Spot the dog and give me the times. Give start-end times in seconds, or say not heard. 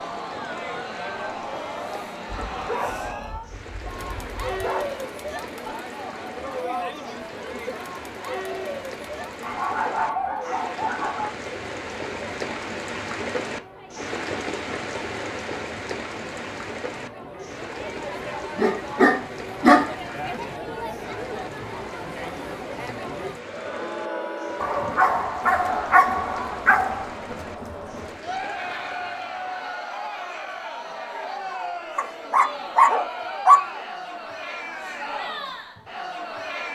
2.2-5.0, 9.4-11.3, 18.6-19.9, 24.6-27.1, 31.9-33.6.